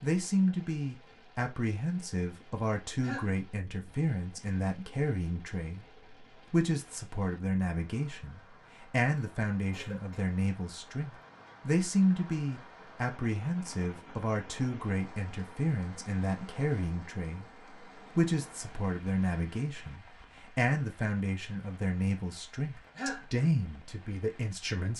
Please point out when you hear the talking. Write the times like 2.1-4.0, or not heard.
0.0-5.8, 6.5-17.4, 18.1-24.9.